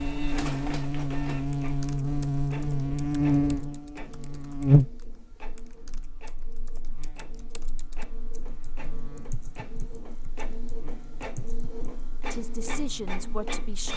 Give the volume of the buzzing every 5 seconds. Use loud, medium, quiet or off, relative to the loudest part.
loud, quiet, quiet.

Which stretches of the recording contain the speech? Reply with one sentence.
You can hear the speech from 12.3 to 13.9 s.